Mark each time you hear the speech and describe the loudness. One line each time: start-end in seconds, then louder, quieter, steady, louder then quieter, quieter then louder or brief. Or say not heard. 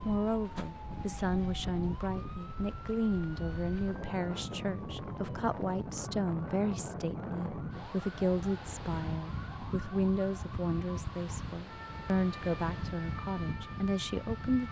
0.0-14.6 steady.